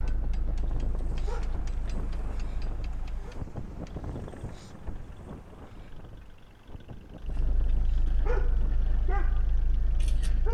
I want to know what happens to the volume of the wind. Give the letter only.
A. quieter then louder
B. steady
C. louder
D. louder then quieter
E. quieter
E.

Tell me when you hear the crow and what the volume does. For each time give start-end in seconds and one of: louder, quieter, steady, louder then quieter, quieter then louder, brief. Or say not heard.
not heard.